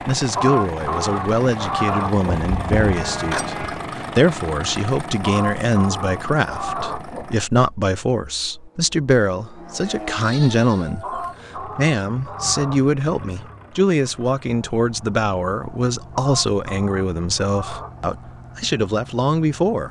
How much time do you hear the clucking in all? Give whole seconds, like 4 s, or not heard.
8 s.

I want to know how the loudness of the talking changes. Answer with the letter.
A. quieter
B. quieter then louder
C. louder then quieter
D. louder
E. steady
E.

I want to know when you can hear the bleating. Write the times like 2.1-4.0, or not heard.
2.5-3.8, 10.2-11.6.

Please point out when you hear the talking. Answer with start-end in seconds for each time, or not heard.
0.1-19.8.